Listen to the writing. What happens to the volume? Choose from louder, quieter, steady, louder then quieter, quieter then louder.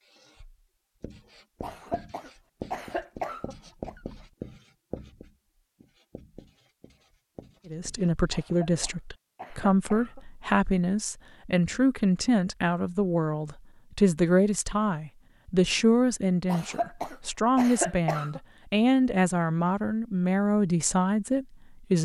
louder then quieter.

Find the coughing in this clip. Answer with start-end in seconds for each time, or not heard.
1.6-4.0, 8.3-10.2, 16.4-18.4.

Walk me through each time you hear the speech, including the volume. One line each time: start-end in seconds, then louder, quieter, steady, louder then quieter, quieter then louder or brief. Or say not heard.
7.7-22.0 steady.